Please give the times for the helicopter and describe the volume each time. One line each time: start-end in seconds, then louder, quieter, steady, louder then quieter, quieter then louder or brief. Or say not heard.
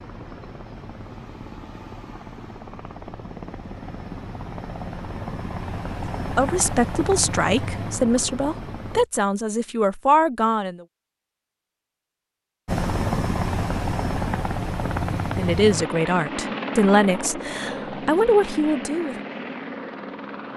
0.0-9.1 louder
12.7-20.5 quieter.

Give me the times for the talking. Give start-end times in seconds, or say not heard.
6.3-10.8, 15.3-19.1.